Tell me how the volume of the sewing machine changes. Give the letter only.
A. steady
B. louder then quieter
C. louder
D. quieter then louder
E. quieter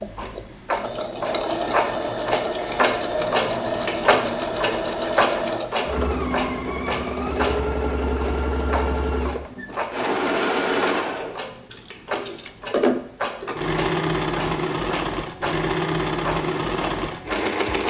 A.